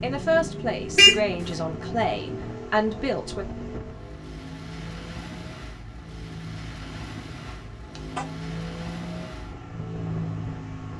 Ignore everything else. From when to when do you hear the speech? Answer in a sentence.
You can hear the speech from 0.0 to 3.5 s.